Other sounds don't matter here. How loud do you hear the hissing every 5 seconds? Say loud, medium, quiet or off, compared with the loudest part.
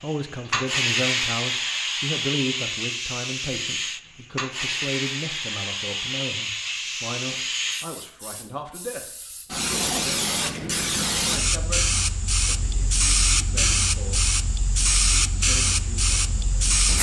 loud, medium, loud, loud.